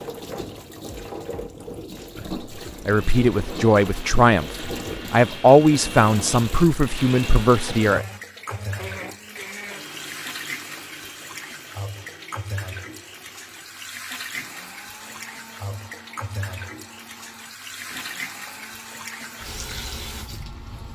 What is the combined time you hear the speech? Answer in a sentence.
The speech can be heard for 5 seconds in total.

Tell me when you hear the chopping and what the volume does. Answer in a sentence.
You can't hear the chopping here.